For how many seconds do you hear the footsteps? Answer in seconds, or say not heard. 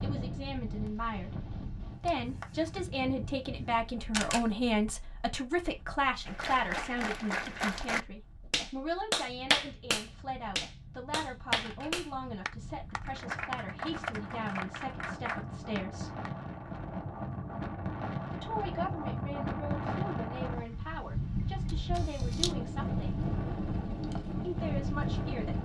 not heard.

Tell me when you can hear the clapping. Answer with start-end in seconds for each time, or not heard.
6.2-16.3.